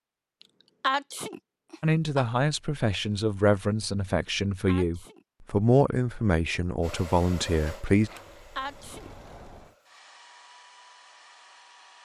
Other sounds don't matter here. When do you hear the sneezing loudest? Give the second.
1 s.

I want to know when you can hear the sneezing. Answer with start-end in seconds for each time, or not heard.
0.8-2.2, 4.7-5.2, 8.6-9.1.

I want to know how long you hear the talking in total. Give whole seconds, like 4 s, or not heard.
6 s.